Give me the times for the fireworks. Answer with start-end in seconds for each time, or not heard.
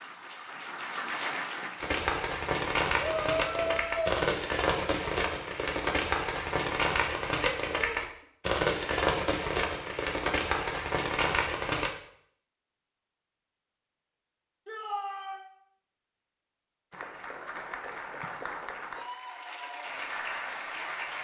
1.8-11.9.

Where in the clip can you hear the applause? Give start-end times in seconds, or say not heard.
0.0-2.0, 16.9-21.2.